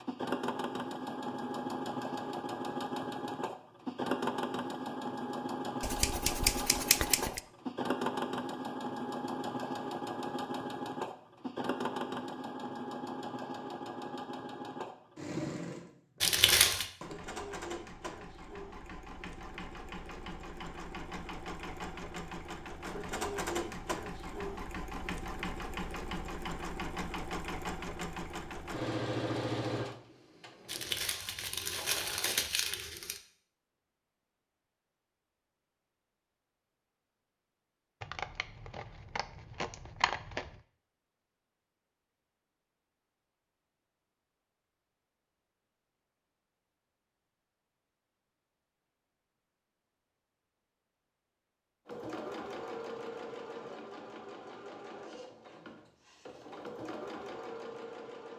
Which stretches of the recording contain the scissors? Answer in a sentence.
You can hear the scissors from 5.8 to 7.4 s and from 38.0 to 40.6 s.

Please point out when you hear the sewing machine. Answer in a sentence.
The sewing machine can be heard from 0.0 to 31.1 s and from 51.9 to 58.3 s.